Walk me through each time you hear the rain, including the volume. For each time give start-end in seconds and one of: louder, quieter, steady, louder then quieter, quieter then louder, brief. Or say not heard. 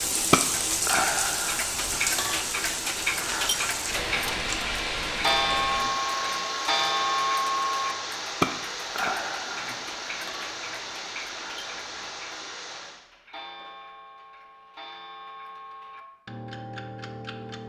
0.0-13.0 quieter.